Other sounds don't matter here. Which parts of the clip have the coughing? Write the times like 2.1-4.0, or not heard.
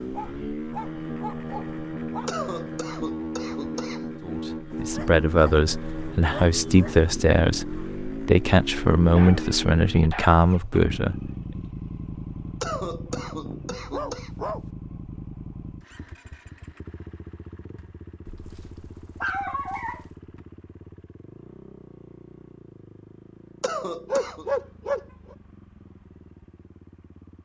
2.2-4.1, 12.6-14.3, 23.6-24.4.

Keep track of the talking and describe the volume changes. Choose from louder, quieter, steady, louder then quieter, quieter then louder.
steady.